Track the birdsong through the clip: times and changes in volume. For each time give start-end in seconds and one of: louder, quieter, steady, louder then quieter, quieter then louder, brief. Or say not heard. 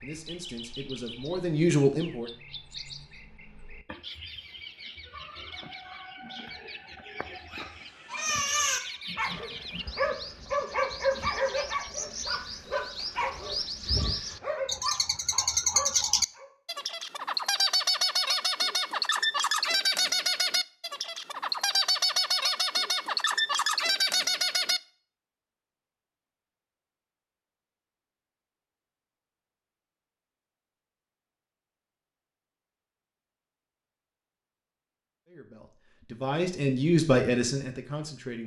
0.0-24.8 louder.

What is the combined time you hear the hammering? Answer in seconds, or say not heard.
not heard.